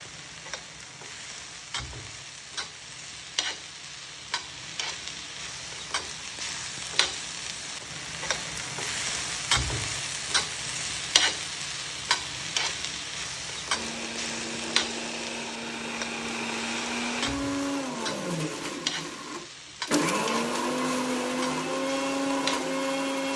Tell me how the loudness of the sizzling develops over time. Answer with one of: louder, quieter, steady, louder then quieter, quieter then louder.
louder then quieter.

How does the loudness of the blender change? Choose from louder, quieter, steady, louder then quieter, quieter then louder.
louder.